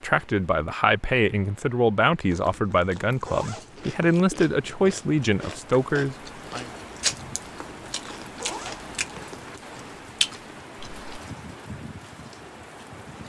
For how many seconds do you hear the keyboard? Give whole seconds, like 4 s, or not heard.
not heard.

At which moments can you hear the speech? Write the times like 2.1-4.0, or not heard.
0.0-6.7.